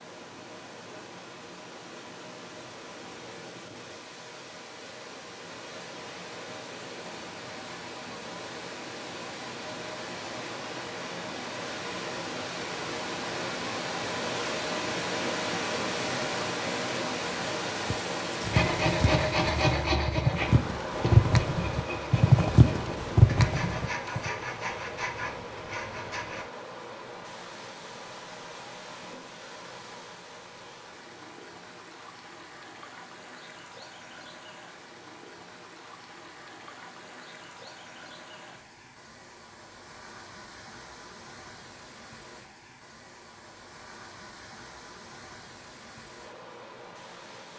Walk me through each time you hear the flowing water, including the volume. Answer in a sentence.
You can hear the flowing water from 0.0 to 47.5 s, getting louder then quieter.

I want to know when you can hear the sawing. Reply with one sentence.
You can hear the sawing from 18.4 to 26.4 s.